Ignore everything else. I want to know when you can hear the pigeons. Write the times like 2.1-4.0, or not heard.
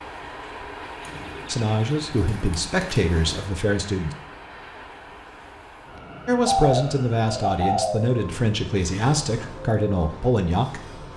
0.8-3.5, 6.4-8.0.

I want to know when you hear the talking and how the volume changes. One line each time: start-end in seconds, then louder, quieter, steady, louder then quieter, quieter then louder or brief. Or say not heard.
1.4-4.2 brief
6.2-10.8 steady.